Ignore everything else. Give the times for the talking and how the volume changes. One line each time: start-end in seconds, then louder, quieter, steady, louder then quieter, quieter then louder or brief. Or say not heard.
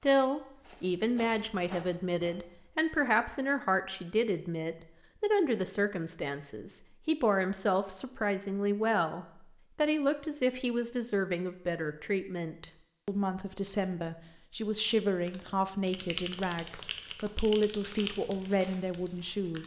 0.0-19.6 steady.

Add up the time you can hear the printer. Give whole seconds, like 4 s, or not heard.
not heard.